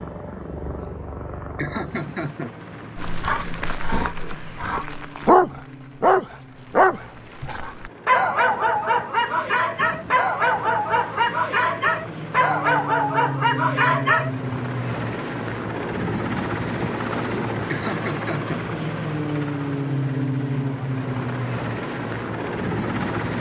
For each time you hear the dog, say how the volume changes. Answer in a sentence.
You can hear the dog from 3.0 to 14.3 s, at a steady volume.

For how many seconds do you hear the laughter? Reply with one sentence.
You can hear the laughter for 2 seconds altogether.